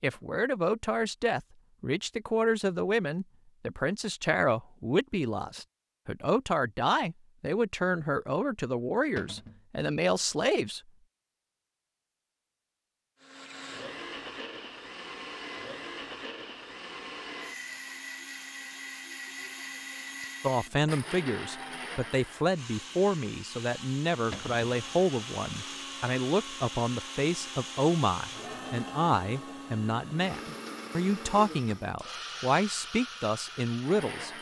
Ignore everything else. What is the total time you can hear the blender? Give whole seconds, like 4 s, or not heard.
21 s.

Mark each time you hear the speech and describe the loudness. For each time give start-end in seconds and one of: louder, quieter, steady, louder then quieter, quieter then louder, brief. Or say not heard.
0.0-10.8 steady
20.4-34.3 steady.